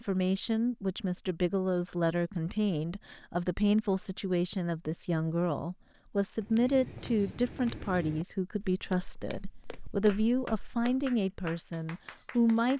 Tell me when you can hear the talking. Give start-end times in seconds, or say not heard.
0.0-12.7.